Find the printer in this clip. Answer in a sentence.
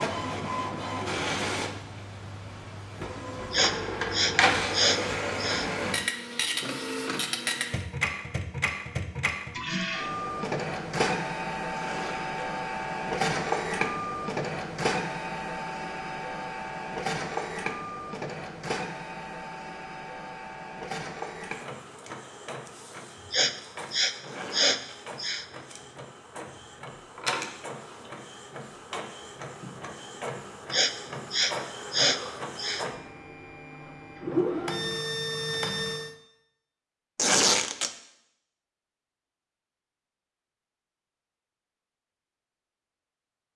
You can hear the printer from 0.0 to 36.1 s.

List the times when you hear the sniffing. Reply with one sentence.
You can hear the sniffing from 3.5 to 5.7 s, from 23.3 to 25.4 s and from 30.7 to 32.9 s.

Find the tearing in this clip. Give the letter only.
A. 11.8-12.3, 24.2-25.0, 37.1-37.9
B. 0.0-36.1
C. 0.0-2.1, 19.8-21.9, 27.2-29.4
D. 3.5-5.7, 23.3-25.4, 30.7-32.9
A.